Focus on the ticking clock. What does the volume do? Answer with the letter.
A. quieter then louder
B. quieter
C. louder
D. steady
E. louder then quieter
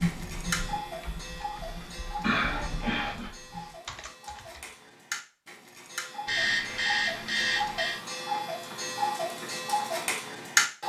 A.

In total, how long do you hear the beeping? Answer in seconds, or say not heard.
3 s.